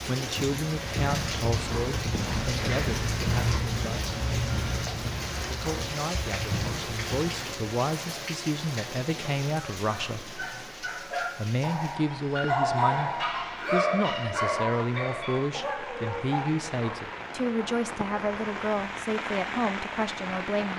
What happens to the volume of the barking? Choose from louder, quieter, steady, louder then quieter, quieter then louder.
louder then quieter.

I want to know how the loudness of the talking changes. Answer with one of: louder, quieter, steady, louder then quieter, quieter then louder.
steady.